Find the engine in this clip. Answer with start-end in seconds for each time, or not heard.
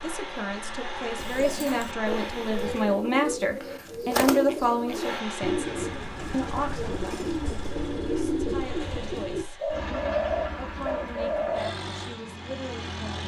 0.0-3.0, 4.8-13.2.